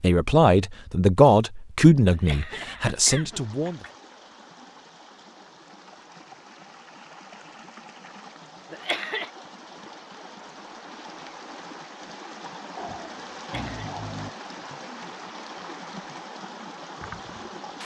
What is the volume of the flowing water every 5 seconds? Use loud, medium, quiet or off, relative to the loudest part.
medium, medium, loud, loud.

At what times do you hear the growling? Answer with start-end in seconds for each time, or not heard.
12.8-14.4.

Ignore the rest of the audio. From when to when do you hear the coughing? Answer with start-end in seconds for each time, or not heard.
2.1-4.0, 8.7-9.3, 13.3-13.9.